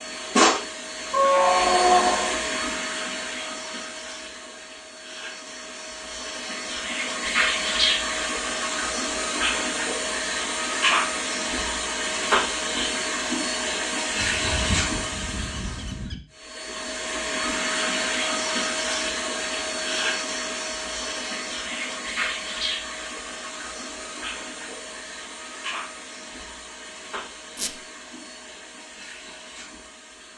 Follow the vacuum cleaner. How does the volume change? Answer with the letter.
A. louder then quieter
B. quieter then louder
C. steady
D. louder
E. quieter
E.